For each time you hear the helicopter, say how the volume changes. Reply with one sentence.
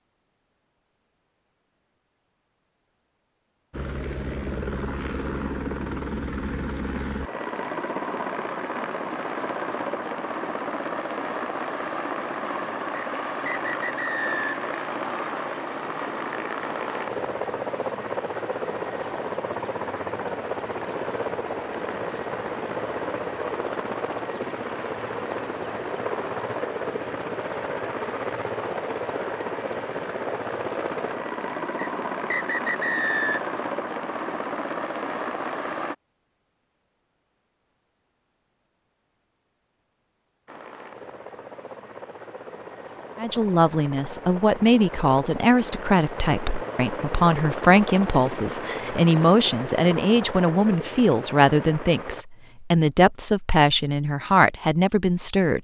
You can hear the helicopter from 3.7 to 36.0 s, at a steady volume; and from 40.5 to 52.2 s, getting louder.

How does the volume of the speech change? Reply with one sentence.
The volume of the speech stays about the same.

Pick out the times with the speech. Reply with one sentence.
You can hear the speech from 43.1 to 55.6 s.